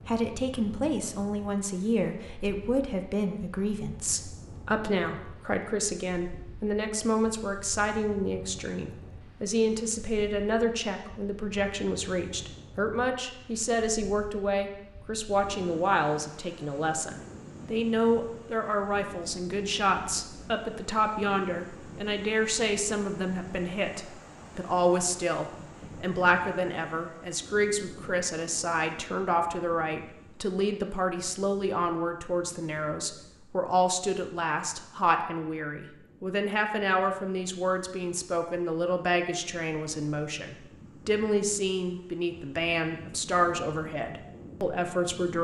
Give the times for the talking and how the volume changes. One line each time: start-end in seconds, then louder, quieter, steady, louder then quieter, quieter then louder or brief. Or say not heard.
0.1-45.4 steady.